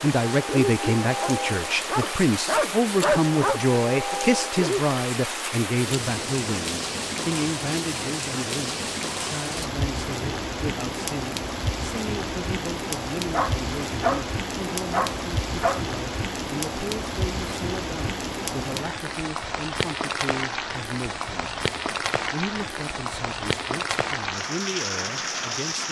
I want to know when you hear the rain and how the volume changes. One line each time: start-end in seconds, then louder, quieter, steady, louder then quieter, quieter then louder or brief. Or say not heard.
0.0-25.8 steady.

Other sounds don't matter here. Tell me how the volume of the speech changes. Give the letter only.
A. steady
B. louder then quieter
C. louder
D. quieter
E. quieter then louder
D.